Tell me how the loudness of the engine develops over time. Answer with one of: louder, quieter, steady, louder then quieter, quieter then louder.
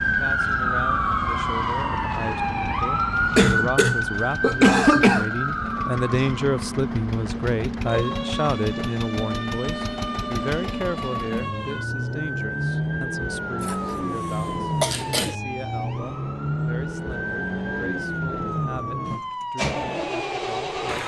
louder.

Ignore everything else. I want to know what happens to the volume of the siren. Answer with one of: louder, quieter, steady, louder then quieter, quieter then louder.
quieter.